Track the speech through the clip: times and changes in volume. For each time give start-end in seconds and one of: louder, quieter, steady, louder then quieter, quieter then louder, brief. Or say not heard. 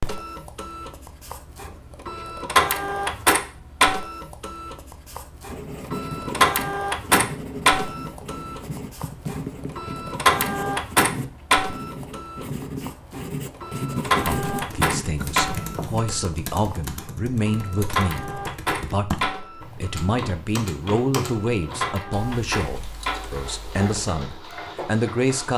14.2-25.5 steady.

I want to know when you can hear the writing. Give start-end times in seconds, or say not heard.
5.5-16.0.